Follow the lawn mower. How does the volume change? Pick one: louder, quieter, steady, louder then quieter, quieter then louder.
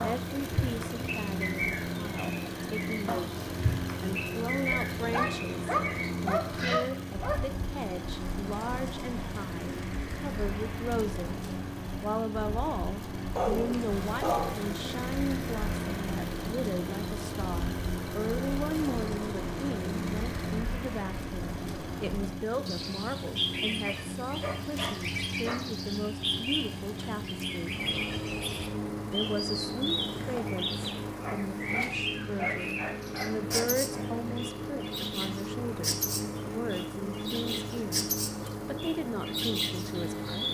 steady.